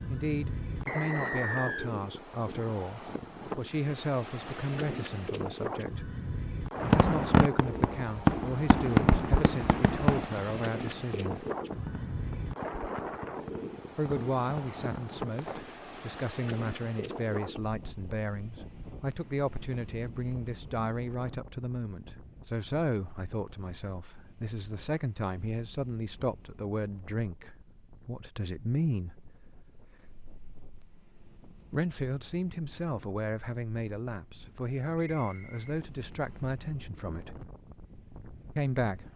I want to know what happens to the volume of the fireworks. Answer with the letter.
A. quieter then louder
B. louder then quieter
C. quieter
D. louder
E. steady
C.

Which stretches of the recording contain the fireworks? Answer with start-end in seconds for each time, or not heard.
6.8-15.7.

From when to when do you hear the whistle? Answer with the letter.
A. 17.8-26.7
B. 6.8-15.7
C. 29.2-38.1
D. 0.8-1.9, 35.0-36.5
D.